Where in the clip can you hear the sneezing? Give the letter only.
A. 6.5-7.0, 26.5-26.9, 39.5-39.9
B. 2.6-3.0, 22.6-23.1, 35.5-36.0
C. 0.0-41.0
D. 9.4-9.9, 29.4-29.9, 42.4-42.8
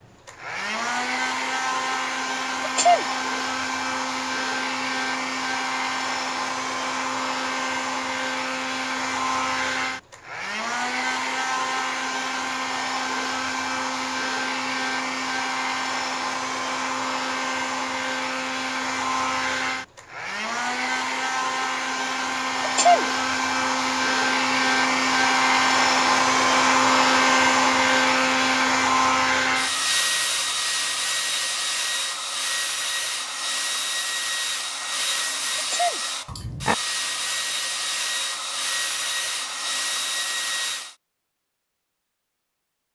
B.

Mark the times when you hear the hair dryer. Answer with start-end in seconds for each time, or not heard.
0.0-41.0.